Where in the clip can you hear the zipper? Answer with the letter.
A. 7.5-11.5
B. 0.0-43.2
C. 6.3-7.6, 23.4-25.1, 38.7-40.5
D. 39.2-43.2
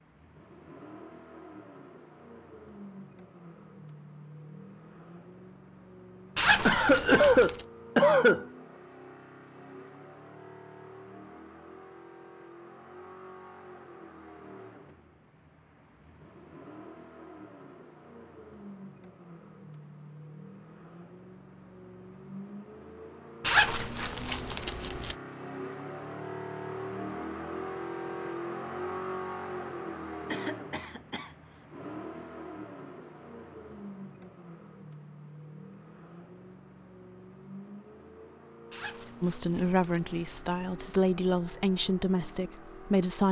C.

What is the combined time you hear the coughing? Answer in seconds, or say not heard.
3 s.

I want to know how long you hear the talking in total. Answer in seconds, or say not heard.
4 s.